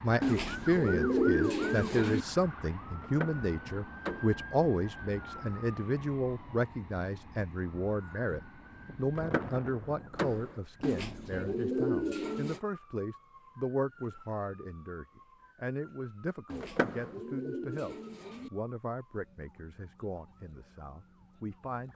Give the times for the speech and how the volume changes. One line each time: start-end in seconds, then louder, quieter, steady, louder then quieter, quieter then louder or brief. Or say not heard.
0.0-21.9 quieter.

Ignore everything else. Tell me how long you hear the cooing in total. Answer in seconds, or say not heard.
6 s.